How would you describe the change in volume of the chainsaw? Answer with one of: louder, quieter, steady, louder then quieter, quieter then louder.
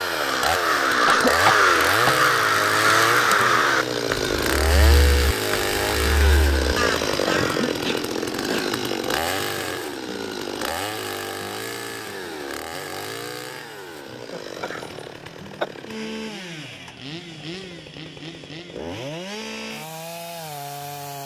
quieter.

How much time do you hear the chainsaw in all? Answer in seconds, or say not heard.
21 s.